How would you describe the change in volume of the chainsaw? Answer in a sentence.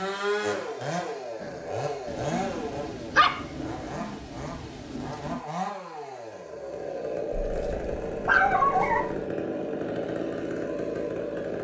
The volume of the chainsaw goes down, then up.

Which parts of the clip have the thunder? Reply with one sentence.
You can hear the thunder from 2.0 to 5.5 s.